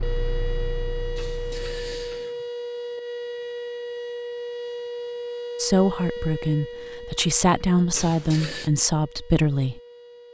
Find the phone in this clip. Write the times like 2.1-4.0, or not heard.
not heard.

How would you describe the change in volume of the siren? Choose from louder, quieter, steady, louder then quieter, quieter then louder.
quieter.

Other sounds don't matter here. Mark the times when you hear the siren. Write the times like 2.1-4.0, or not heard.
0.0-10.2.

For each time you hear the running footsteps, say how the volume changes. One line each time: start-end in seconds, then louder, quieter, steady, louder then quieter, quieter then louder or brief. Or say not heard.
not heard.